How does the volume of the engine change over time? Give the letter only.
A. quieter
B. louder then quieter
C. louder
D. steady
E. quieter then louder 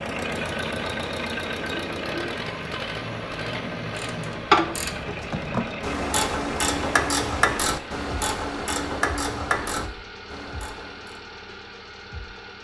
A.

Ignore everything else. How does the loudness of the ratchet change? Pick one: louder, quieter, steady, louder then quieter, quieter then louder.
quieter.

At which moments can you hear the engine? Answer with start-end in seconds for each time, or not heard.
0.0-12.5.